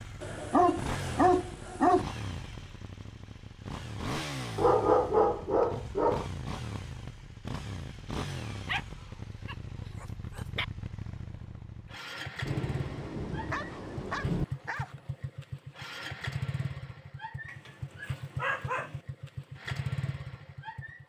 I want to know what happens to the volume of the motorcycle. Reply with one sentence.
The loudness of the motorcycle stays about the same.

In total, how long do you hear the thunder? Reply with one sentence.
You can hear the thunder for 2 seconds altogether.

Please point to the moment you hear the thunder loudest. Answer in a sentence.
The loudest moment of the thunder is at 14 seconds.